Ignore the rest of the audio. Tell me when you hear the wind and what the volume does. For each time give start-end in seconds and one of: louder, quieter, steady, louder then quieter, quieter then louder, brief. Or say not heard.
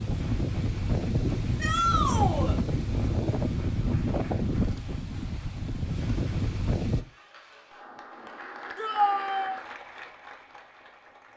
0.0-7.0 steady.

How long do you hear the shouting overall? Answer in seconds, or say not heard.
2 s.